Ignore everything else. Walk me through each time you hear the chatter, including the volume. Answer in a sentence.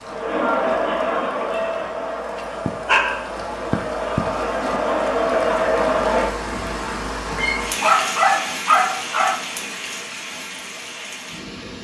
You can hear the chatter from 0.0 to 6.3 s, getting quieter then louder.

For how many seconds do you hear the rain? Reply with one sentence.
You can hear the rain for 12 seconds altogether.